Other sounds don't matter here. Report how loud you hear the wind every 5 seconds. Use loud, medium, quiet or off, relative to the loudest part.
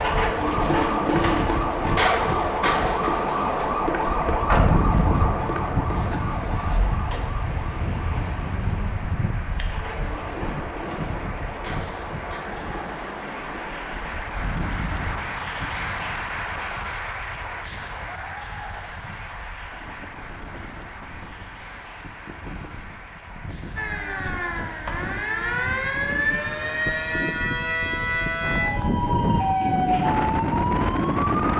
medium, medium, medium, quiet, quiet, medium, loud.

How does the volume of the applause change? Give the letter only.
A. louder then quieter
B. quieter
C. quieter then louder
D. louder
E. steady
A.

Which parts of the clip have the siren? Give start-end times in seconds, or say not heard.
0.0-13.7, 23.8-31.5.